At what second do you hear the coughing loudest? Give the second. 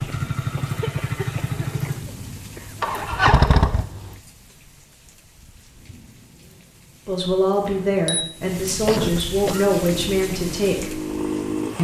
9 s.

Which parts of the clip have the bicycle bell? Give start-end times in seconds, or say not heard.
7.7-8.2.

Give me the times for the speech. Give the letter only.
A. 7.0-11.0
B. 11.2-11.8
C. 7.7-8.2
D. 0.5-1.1
A.